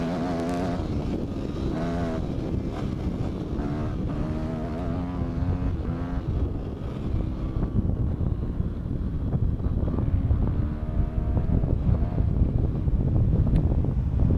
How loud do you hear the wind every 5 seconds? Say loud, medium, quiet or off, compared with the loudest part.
medium, medium, loud.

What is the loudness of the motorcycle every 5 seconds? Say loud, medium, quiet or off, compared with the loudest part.
loud, medium, medium.